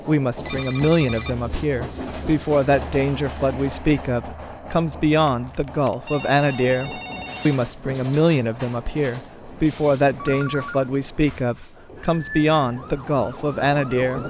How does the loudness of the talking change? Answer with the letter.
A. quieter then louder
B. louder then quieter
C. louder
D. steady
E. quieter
D.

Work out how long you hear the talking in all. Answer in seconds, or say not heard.
14 s.